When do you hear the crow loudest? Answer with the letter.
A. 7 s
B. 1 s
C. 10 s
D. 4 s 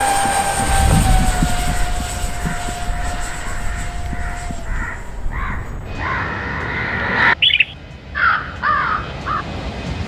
A.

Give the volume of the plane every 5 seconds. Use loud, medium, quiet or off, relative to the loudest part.
loud, medium.